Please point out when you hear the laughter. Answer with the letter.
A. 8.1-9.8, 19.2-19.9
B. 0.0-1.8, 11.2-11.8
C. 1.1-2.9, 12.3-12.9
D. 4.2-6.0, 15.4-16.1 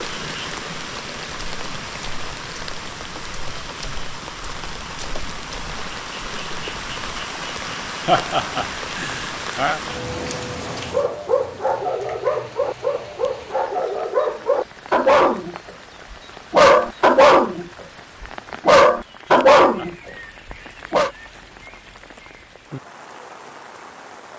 A.